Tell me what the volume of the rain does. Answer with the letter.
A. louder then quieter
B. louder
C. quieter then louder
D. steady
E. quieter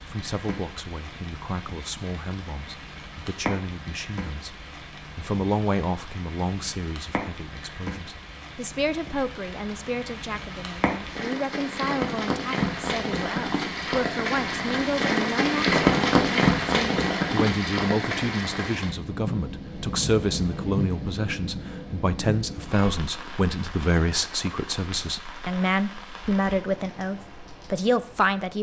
A.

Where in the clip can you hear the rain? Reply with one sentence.
You can hear the rain from 0.0 to 28.5 s.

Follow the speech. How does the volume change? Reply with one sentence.
The loudness of the speech goes up.